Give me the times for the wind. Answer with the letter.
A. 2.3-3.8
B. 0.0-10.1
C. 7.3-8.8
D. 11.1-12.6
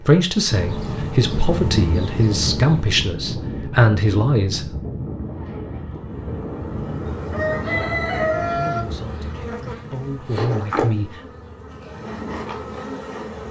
B.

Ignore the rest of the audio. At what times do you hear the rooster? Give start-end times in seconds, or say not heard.
7.3-8.8.